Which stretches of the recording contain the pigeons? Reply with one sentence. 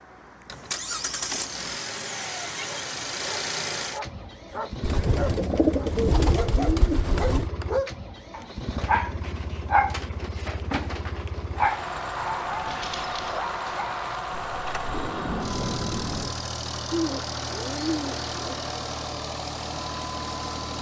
The pigeons can be heard from 4.8 to 7.5 s and from 16.9 to 18.6 s.